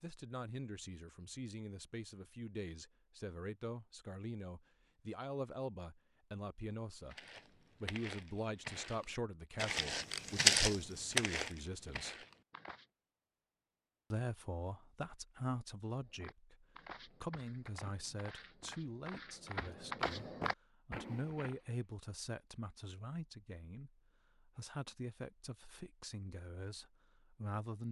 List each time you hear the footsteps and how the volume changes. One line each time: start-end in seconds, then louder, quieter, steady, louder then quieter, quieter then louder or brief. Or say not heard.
7.1-12.8 louder then quieter
15.9-21.7 louder.